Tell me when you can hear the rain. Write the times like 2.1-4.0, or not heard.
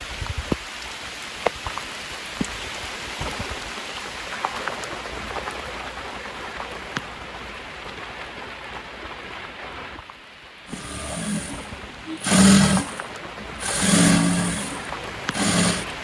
0.0-15.9.